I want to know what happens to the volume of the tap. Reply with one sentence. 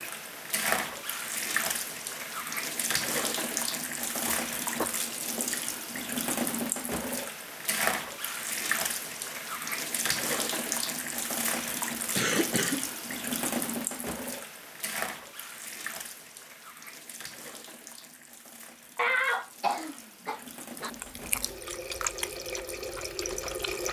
The loudness of the tap goes down.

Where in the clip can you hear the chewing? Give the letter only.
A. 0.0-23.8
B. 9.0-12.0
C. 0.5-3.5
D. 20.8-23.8
D.